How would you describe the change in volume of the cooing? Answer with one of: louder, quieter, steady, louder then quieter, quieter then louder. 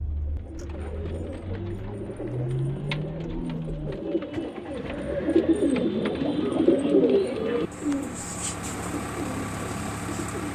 louder then quieter.